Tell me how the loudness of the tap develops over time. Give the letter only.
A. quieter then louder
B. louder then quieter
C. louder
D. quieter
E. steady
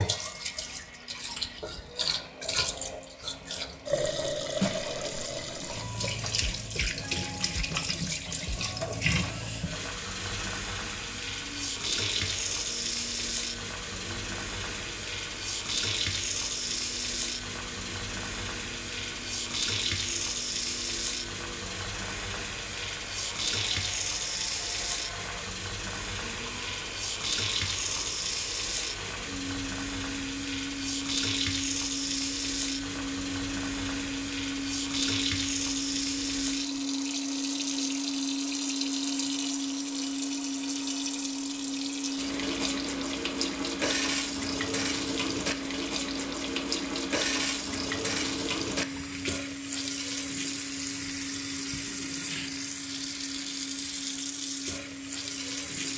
E.